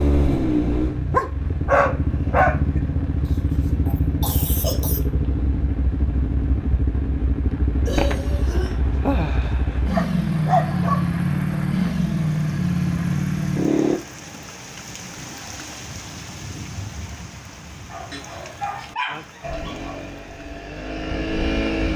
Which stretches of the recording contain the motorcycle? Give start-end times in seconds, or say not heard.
0.0-14.0, 19.4-21.9.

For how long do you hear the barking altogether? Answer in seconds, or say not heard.
6 s.